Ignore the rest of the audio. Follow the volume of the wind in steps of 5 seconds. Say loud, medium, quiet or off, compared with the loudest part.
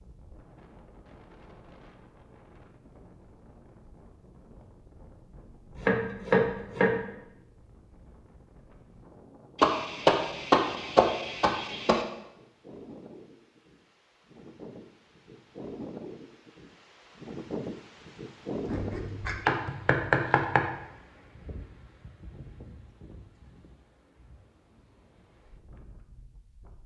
quiet, quiet, medium, loud, quiet, quiet.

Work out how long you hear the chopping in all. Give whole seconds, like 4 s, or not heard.
6 s.